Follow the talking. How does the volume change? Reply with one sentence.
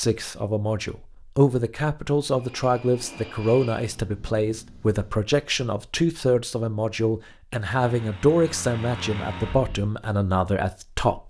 The loudness of the talking stays about the same.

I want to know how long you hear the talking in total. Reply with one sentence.
You can hear the talking for 11 seconds altogether.